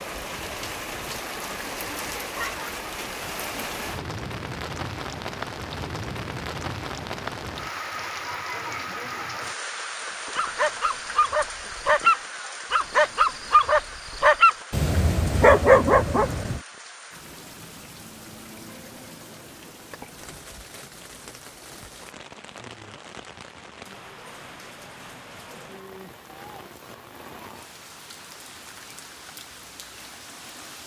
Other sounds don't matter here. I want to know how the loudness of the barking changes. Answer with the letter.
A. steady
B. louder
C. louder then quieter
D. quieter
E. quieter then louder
B.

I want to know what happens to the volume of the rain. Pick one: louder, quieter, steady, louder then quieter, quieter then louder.
quieter.